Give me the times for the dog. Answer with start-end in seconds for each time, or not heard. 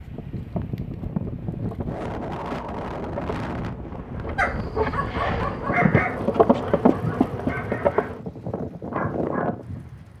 4.3-9.8.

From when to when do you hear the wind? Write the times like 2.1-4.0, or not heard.
0.0-10.1.